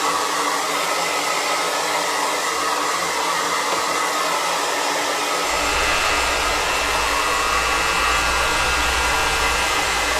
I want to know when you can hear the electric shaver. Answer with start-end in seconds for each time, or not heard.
5.5-10.1.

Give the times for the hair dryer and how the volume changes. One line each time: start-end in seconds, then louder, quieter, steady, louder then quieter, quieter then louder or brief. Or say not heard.
0.0-10.1 steady.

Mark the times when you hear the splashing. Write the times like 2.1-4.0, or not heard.
not heard.